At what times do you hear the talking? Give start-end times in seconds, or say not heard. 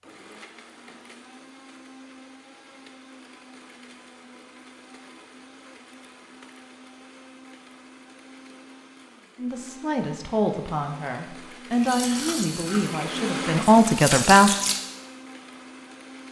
9.3-14.5.